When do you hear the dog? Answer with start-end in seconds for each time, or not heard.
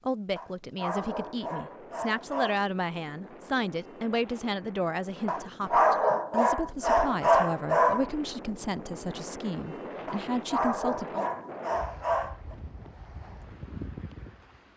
0.3-2.6, 5.2-8.1, 10.1-12.6.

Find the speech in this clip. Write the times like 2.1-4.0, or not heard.
0.1-11.2.